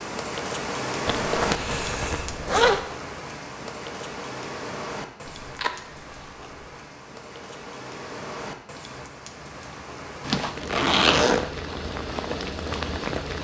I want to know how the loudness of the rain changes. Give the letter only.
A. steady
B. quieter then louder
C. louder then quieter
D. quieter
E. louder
B.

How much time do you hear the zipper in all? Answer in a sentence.
The zipper can be heard for 4 seconds in total.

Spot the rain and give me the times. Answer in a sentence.
The rain can be heard from 0.0 to 13.3 s.